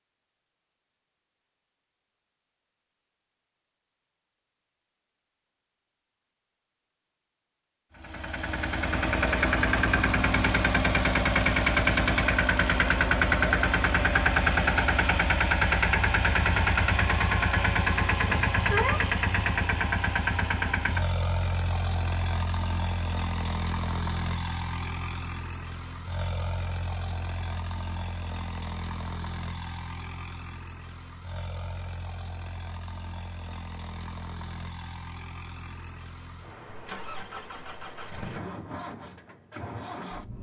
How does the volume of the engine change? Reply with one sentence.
The loudness of the engine goes down.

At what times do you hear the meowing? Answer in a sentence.
The meowing can be heard from 18.2 to 19.0 s.